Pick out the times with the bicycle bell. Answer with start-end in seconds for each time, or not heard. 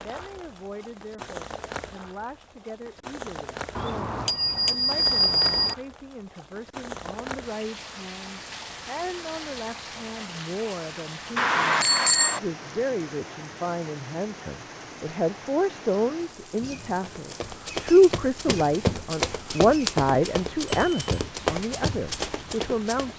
3.8-5.8, 11.3-12.4, 20.7-21.1.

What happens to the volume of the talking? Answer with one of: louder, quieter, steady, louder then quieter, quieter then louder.
louder.